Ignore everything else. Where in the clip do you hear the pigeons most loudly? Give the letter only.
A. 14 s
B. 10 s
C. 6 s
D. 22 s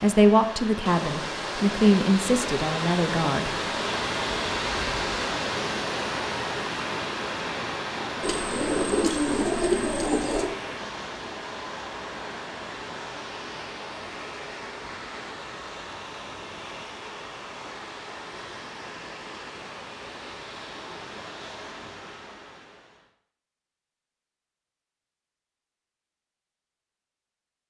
B.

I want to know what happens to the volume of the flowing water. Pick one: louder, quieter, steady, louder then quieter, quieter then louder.
quieter.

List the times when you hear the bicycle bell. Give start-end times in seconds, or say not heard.
not heard.